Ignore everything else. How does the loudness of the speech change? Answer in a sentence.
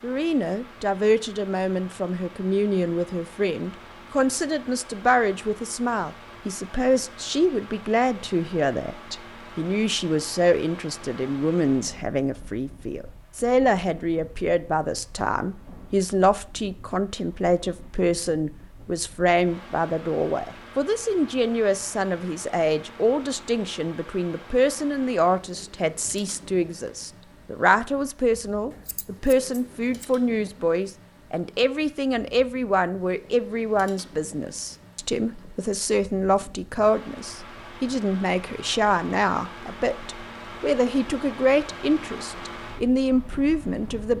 The volume of the speech stays about the same.